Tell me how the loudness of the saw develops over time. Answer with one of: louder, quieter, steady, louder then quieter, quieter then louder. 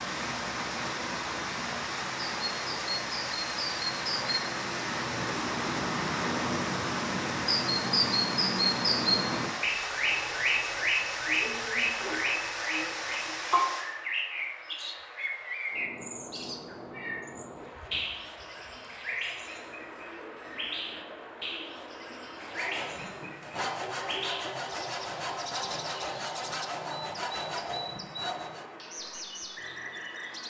steady.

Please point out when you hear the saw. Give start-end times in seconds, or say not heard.
22.4-28.8.